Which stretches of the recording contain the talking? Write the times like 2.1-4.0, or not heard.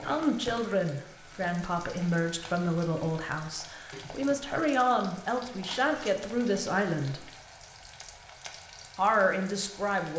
0.0-7.2, 8.9-10.1.